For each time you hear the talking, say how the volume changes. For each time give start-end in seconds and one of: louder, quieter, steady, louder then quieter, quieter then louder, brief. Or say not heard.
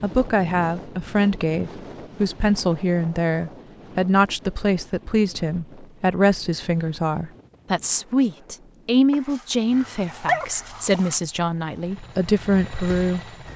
0.0-13.2 steady.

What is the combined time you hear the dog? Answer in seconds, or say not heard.
2 s.